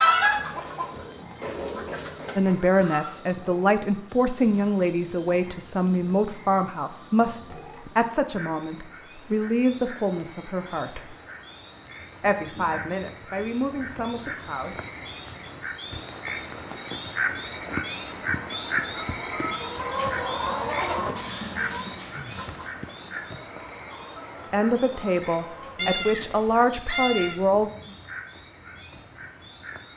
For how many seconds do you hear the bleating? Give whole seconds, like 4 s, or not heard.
2 s.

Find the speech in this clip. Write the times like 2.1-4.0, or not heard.
2.4-11.2, 12.2-14.8, 24.5-27.7.